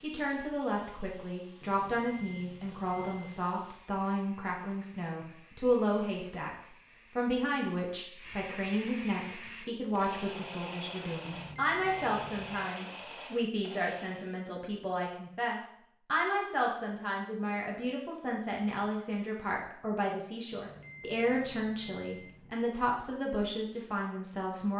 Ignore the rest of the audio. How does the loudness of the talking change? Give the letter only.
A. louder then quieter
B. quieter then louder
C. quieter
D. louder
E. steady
E.